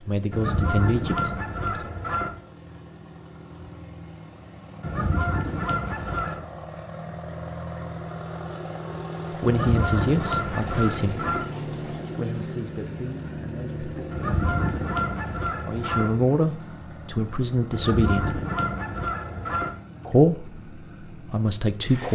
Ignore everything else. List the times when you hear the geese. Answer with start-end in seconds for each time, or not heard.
0.3-2.3, 4.8-6.4, 9.4-11.4, 14.1-16.1, 17.7-19.7.